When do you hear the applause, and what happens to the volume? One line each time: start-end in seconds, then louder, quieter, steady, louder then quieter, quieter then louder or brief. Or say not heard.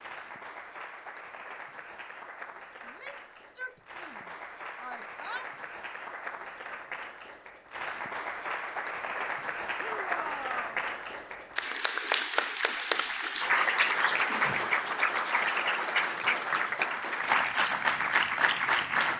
0.0-19.1 louder.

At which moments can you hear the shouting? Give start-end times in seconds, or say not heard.
2.9-5.5, 9.8-10.8.